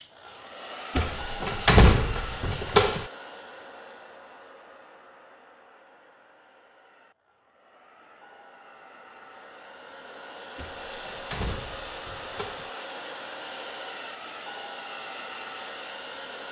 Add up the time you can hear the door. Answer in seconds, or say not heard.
4 s.